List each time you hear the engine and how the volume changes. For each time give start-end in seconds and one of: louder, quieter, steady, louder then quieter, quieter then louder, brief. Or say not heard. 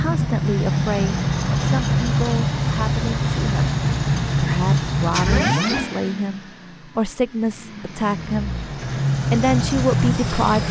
0.0-10.6 quieter then louder.